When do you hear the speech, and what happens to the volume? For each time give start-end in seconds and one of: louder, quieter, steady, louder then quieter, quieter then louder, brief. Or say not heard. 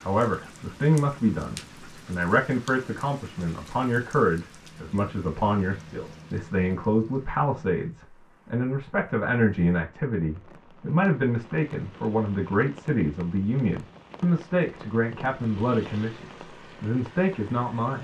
0.0-17.9 steady.